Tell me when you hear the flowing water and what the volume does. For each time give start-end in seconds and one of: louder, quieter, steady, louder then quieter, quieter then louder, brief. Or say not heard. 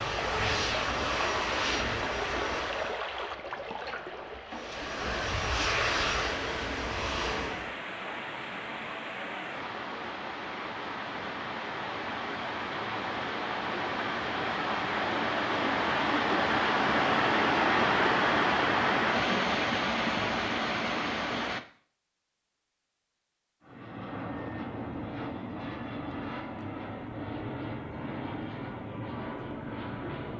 0.0-21.6 louder.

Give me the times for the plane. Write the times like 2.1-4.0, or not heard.
0.0-3.0, 4.5-7.8, 23.6-30.3.